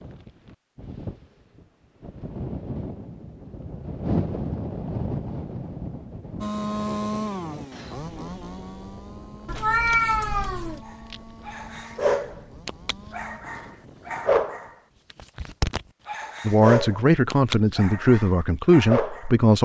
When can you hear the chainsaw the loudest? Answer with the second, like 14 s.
7 s.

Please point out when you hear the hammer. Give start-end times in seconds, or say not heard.
not heard.